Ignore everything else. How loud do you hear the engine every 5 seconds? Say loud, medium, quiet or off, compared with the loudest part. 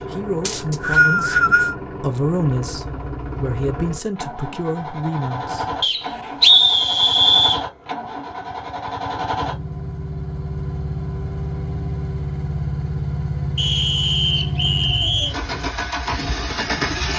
medium, loud, loud, loud.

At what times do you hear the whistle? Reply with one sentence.
You can hear the whistle from 0.5 to 1.8 s, from 5.8 to 7.6 s and from 13.6 to 15.3 s.